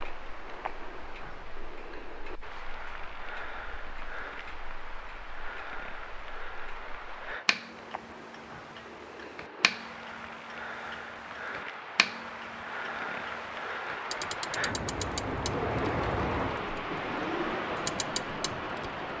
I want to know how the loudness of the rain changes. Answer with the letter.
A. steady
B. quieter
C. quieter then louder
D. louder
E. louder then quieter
D.